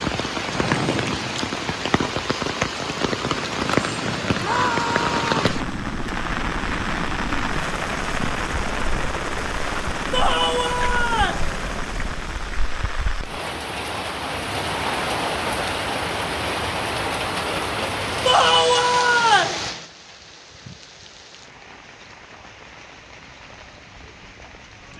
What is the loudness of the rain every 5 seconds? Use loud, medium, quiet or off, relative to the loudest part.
loud, loud, medium, loud, quiet.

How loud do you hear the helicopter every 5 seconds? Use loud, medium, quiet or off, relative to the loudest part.
loud, loud, loud, off, off.